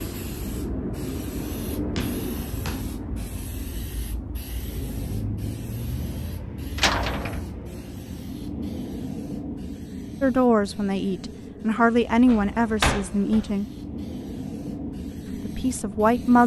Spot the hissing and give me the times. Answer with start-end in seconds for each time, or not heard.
0.0-16.4.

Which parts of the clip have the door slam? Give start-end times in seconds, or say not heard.
1.9-2.9, 6.8-7.4, 12.2-13.6.